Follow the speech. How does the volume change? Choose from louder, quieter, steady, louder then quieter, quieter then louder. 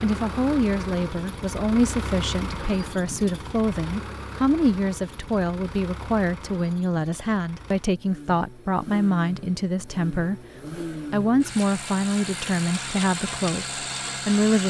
steady.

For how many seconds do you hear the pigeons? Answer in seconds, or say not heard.
not heard.